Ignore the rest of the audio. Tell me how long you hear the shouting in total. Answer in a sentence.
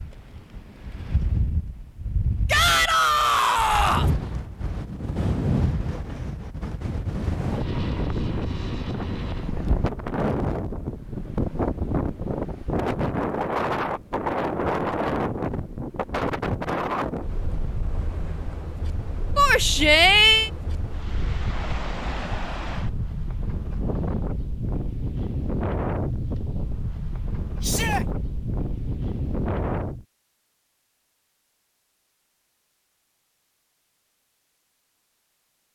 You can hear the shouting for 3 seconds altogether.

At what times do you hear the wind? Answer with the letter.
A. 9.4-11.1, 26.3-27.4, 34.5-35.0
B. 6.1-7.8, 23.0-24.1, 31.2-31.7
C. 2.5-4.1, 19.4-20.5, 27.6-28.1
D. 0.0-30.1
D.